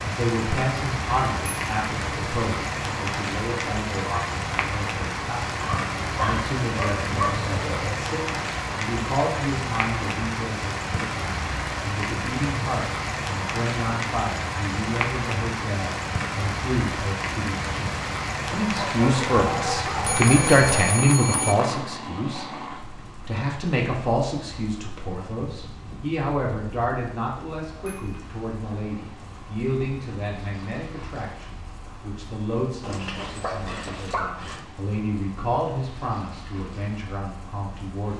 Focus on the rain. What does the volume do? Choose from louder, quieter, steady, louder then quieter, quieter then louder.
quieter.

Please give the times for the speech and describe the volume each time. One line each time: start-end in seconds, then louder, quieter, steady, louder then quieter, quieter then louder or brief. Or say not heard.
0.0-38.1 louder then quieter.